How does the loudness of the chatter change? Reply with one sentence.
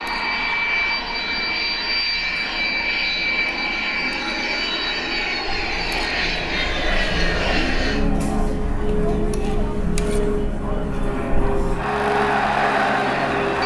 The volume of the chatter goes up.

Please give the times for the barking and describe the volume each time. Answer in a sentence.
The barking can't be heard in this clip.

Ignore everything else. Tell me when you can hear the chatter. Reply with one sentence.
You can hear the chatter from 0.0 to 13.6 s.